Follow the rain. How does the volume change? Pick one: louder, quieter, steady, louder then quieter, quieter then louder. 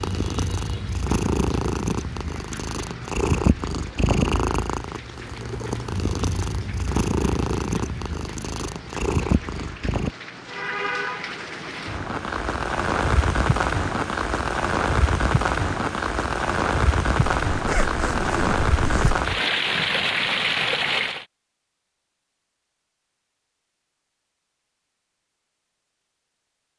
louder.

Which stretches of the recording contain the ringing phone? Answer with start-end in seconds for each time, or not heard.
not heard.